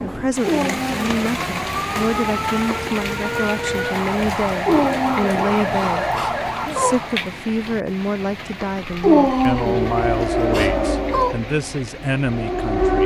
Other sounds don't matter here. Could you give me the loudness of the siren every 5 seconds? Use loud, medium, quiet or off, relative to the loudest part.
medium, loud, loud.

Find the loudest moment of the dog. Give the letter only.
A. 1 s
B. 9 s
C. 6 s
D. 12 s
B.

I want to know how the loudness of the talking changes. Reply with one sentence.
The volume of the talking stays about the same.